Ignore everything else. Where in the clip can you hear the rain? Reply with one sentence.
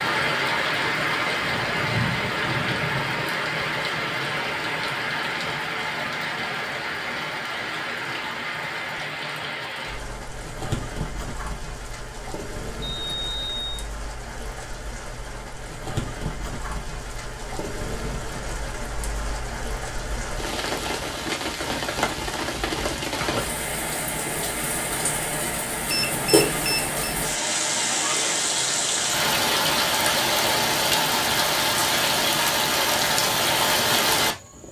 You can hear the rain from 0.0 to 34.6 s.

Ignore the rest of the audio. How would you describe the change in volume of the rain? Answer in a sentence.
The loudness of the rain goes down, then up.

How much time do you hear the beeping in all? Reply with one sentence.
The beeping can be heard for 2 seconds in total.